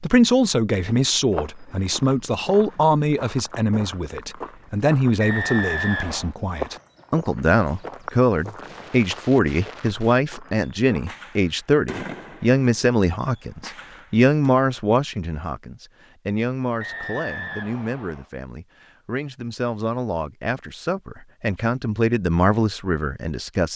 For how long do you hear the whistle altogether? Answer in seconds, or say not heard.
3 s.